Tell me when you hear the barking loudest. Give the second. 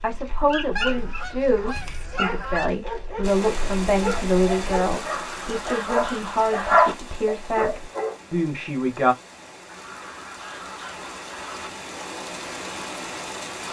7 s.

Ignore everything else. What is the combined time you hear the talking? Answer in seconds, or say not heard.
9 s.